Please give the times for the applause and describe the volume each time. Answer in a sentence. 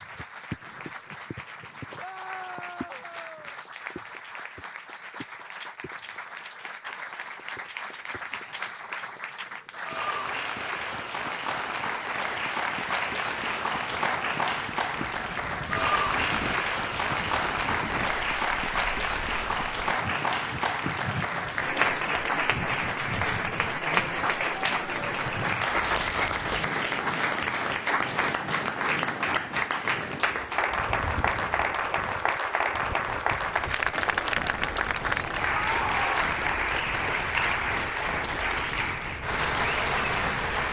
The applause can be heard from 0.0 to 40.6 s, getting louder.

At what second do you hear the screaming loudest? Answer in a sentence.
The loudest moment of the screaming is at 36 seconds.